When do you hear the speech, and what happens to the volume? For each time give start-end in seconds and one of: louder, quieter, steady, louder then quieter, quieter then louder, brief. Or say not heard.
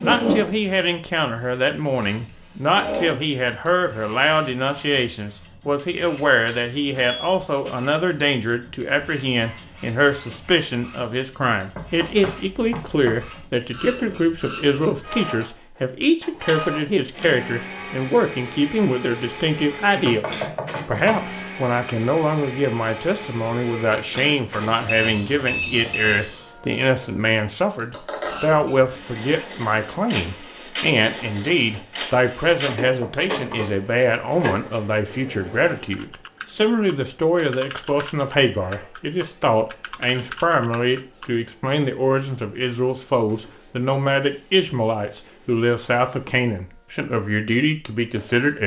0.0-48.6 steady.